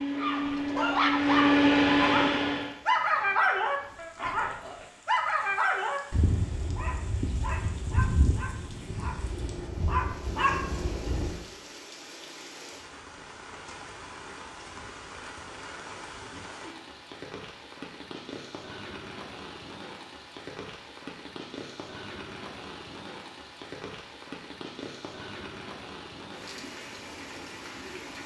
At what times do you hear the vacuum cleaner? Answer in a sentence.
The vacuum cleaner can be heard from 0.0 to 2.8 s.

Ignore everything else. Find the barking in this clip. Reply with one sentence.
You can hear the barking from 0.1 to 11.4 s.